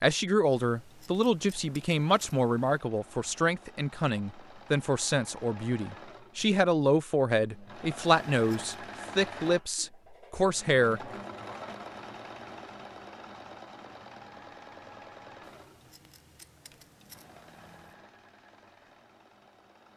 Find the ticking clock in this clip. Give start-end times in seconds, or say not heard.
not heard.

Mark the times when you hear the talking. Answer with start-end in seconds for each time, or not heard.
0.0-11.1.